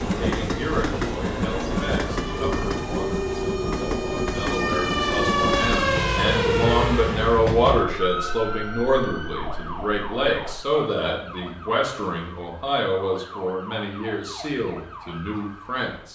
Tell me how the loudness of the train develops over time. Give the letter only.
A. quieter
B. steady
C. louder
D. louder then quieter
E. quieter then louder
A.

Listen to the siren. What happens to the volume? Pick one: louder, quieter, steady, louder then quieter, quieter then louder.
louder then quieter.